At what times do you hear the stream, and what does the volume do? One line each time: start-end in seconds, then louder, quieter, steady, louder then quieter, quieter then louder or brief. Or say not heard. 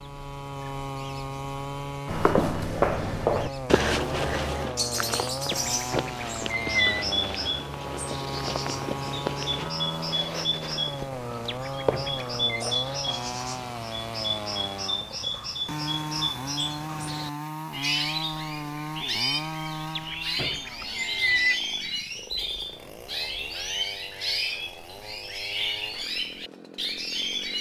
not heard.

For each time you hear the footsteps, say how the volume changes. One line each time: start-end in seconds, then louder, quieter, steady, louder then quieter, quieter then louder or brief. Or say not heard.
2.0-13.2 quieter.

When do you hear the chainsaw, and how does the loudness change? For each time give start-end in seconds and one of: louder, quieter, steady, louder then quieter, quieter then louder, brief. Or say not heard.
0.0-27.5 quieter.